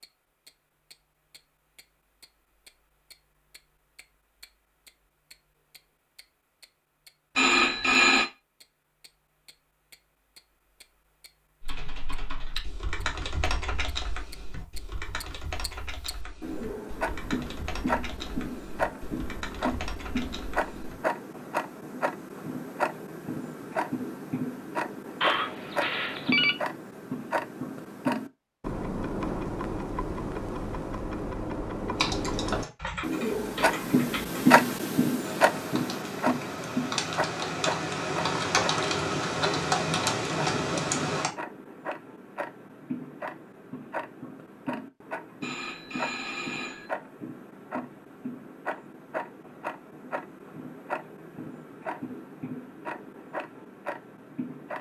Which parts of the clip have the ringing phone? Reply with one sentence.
The ringing phone can be heard from 7.3 to 8.2 s, from 25.2 to 26.6 s and from 45.4 to 46.9 s.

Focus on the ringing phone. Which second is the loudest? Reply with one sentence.
The volume of the ringing phone peaks at 8 seconds.